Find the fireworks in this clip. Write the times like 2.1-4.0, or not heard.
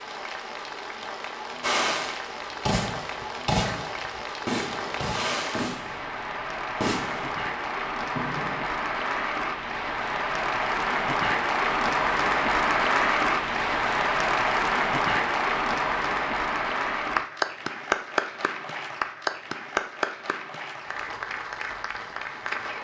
1.6-8.7.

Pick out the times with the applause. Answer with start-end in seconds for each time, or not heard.
0.0-22.7.